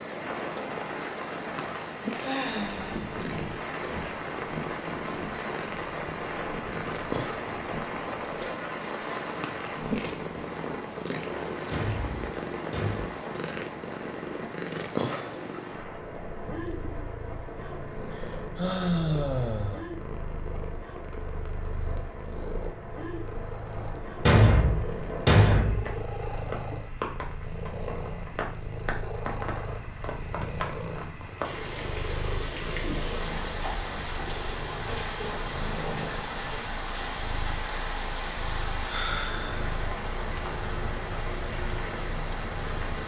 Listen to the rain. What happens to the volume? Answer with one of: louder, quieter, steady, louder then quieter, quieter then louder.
quieter then louder.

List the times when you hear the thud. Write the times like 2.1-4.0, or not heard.
11.7-13.1, 24.2-25.9.